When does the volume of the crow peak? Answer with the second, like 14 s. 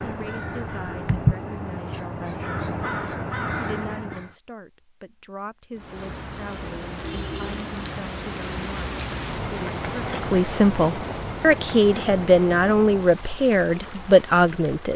1 s.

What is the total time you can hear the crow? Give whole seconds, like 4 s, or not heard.
4 s.